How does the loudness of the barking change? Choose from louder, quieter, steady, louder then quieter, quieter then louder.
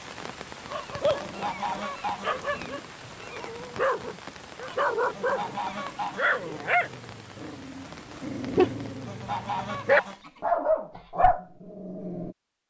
louder.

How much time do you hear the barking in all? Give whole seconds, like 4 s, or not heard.
12 s.